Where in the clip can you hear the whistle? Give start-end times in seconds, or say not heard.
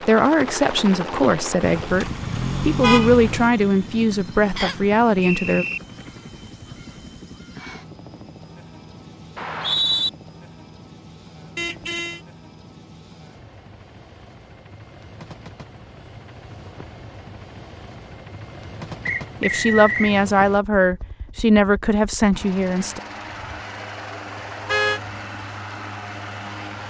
4.5-5.8, 9.3-10.1, 19.1-20.1.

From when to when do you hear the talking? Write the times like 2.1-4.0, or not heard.
0.1-5.7, 19.4-23.0.